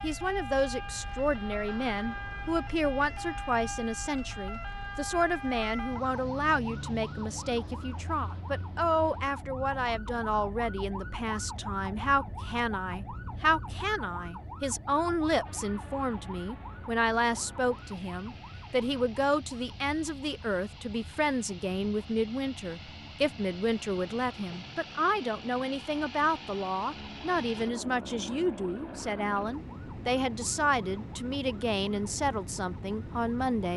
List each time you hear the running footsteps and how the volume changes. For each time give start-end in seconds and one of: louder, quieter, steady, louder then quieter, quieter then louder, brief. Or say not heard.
not heard.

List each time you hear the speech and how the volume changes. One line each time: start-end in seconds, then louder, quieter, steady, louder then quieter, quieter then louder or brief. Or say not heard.
0.0-33.7 steady.